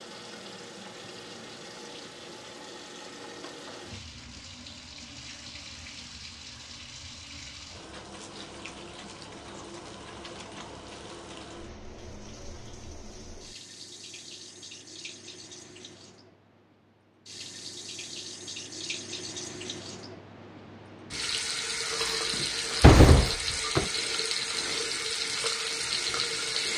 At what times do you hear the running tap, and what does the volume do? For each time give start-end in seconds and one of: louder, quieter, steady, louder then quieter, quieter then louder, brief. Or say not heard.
0.0-26.7 louder.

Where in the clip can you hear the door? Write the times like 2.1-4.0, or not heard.
22.0-23.9.